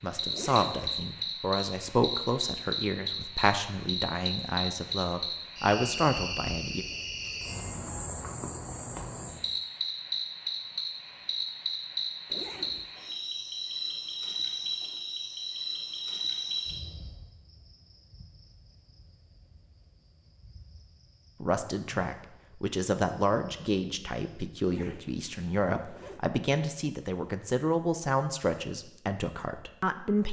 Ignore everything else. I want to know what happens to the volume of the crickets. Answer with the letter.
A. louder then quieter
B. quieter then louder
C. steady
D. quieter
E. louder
D.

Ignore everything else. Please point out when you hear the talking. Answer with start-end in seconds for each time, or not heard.
0.0-6.8, 21.4-30.2.